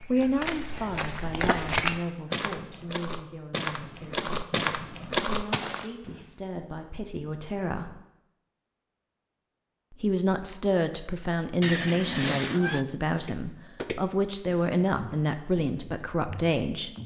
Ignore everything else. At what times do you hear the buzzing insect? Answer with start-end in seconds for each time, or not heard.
not heard.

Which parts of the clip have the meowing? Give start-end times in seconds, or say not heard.
11.6-12.8.